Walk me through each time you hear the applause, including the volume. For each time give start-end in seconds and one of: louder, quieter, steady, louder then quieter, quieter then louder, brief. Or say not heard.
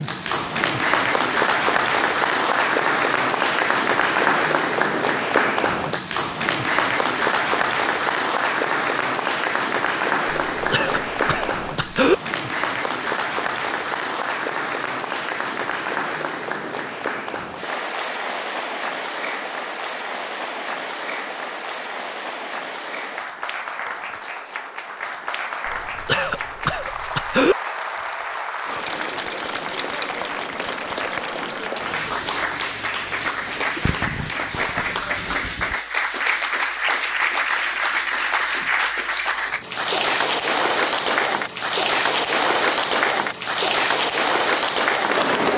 0.0-45.5 quieter then louder.